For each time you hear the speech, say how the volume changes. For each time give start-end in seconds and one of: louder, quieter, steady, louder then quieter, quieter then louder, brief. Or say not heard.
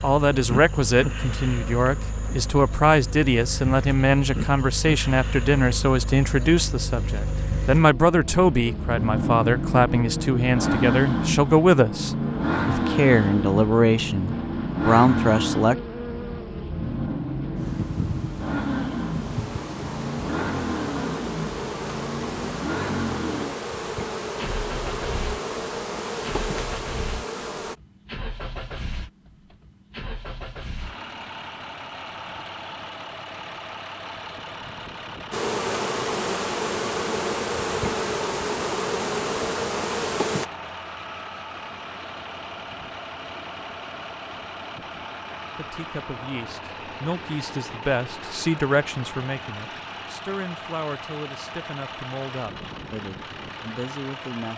0.0-15.8 steady
45.5-54.5 louder then quieter.